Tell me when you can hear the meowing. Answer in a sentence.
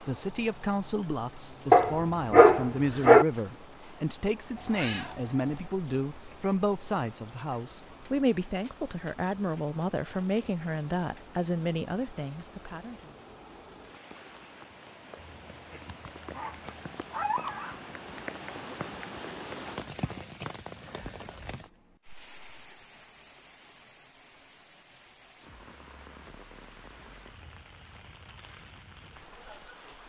You can hear the meowing from 4.5 to 5.8 s.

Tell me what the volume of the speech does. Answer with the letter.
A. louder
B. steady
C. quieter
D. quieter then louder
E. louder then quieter
B.